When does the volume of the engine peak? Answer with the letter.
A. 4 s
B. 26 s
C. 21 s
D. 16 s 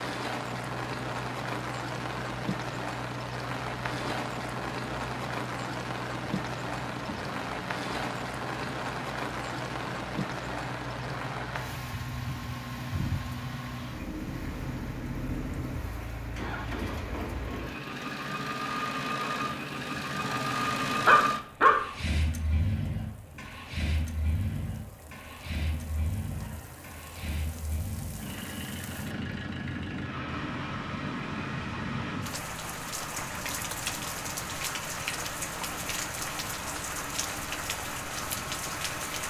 C.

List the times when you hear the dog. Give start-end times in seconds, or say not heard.
20.2-21.8.